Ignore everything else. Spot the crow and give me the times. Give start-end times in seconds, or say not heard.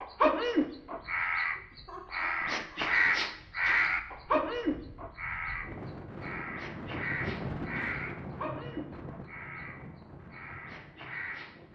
0.0-11.7.